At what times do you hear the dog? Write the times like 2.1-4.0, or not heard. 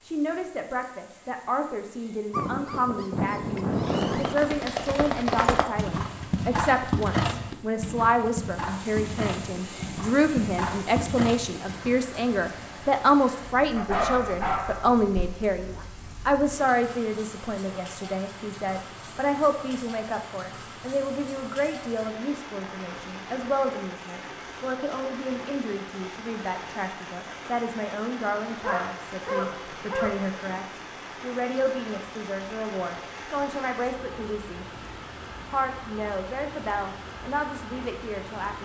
2.3-4.3, 13.8-15.2, 28.6-30.3.